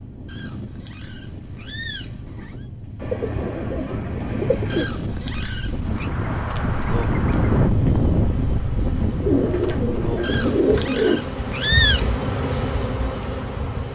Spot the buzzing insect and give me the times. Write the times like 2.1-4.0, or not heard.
5.8-13.9.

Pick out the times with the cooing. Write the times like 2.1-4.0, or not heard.
3.0-4.8, 9.2-11.2.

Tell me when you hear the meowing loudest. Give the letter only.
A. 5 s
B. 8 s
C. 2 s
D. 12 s
D.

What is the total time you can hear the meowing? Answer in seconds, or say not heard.
6 s.